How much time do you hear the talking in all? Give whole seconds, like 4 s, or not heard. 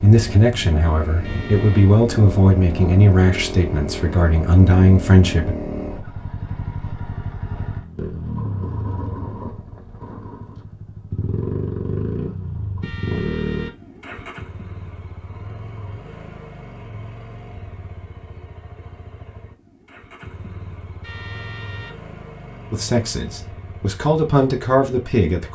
8 s.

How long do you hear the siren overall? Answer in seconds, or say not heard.
not heard.